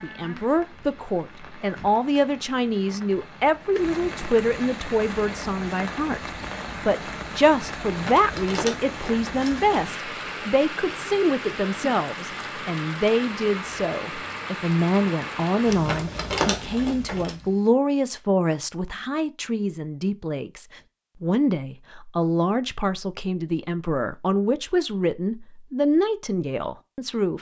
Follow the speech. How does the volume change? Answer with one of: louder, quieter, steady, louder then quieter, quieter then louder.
steady.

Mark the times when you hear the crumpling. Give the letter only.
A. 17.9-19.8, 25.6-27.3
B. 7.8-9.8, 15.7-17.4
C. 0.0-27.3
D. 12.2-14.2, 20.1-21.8
B.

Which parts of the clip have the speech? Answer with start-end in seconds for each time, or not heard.
0.0-27.3.